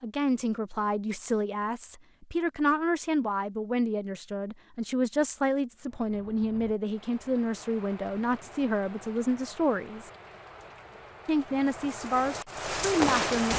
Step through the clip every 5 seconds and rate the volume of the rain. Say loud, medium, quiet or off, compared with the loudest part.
off, quiet, loud.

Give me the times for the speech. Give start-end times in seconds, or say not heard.
0.0-10.1, 11.2-13.5.